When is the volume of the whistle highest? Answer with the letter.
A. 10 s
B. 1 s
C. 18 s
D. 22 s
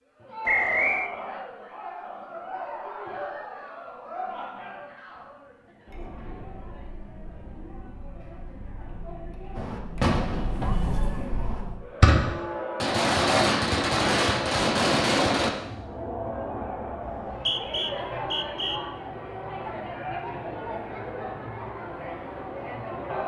B.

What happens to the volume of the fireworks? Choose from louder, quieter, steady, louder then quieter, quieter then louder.
quieter then louder.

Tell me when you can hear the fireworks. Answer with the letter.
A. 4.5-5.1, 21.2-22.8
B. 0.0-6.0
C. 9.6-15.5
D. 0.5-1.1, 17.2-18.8
C.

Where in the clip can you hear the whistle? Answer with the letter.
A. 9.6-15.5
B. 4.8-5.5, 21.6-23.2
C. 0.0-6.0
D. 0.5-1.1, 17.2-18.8
D.